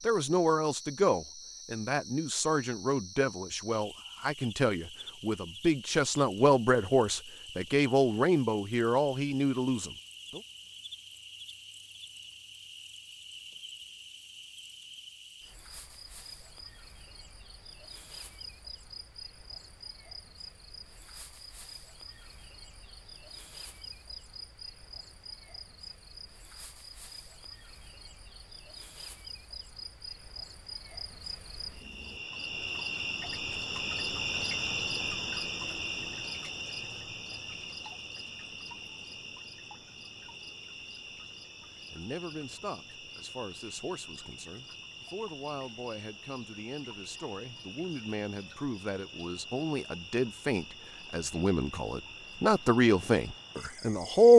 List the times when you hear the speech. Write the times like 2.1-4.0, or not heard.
0.1-10.4, 41.9-54.3.